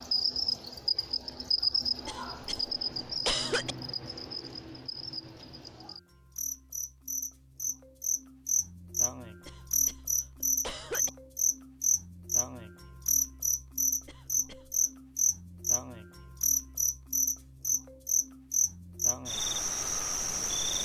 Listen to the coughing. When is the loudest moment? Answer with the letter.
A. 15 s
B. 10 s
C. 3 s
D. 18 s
C.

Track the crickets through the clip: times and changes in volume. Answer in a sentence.
You can hear the crickets from 0.0 to 20.7 s, getting quieter then louder.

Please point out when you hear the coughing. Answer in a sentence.
The coughing can be heard from 2.0 to 3.8 s, from 9.4 to 11.1 s and from 14.1 to 14.8 s.